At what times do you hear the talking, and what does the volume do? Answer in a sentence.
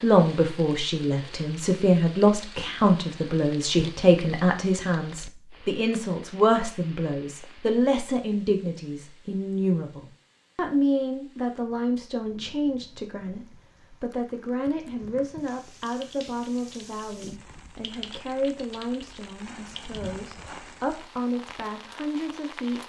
You can hear the talking from 0.0 to 22.8 s, getting quieter.